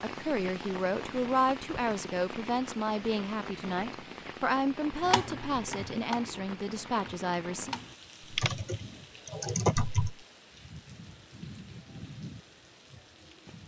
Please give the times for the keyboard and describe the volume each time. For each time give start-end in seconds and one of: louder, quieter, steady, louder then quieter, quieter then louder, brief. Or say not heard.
5.0-10.2 quieter then louder.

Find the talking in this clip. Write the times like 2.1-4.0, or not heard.
0.0-7.8.